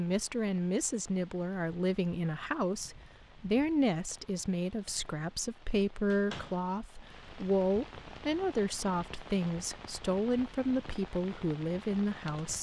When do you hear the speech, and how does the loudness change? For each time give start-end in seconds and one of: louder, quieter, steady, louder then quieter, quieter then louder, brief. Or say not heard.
0.0-12.5 steady.